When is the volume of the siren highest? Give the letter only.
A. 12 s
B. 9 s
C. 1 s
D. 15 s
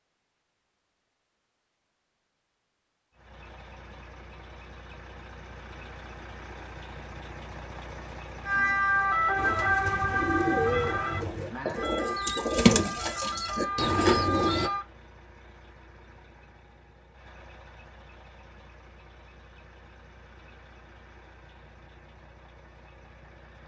B.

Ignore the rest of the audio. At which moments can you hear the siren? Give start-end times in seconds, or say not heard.
8.4-14.8.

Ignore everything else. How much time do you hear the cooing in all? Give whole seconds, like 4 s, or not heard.
5 s.